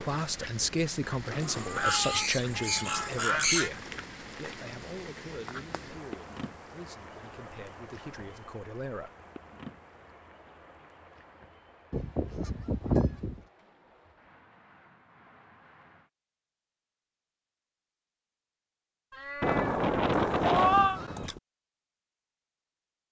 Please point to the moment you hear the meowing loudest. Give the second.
21 s.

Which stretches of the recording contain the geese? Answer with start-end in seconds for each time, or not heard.
1.8-3.7, 11.9-13.4, 19.4-21.4.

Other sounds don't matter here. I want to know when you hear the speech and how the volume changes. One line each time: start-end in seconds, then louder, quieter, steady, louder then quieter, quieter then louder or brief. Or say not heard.
0.0-9.1 quieter.